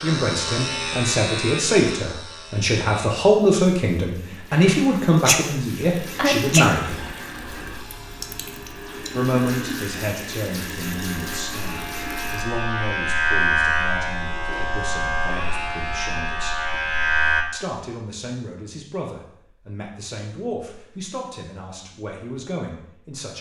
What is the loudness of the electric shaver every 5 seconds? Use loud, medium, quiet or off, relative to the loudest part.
medium, quiet, loud, loud, off.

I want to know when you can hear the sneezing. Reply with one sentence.
You can hear the sneezing from 4.3 to 5.5 s and from 6.2 to 6.7 s.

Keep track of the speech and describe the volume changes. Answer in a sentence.
The volume of the speech goes down.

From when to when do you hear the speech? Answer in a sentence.
You can hear the speech from 0.0 to 7.2 s, from 9.1 to 16.6 s and from 17.5 to 23.3 s.